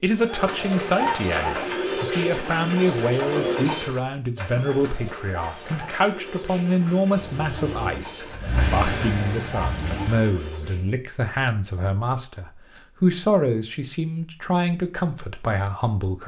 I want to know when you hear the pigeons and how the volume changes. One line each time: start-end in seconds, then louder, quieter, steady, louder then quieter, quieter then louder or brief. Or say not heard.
0.1-10.9 quieter.